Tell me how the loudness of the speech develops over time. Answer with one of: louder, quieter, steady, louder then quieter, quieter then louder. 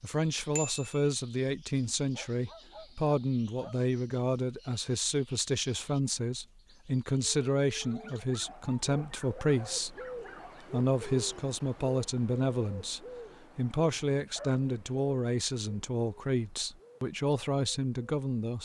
steady.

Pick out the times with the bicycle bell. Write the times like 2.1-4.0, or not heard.
0.6-1.1.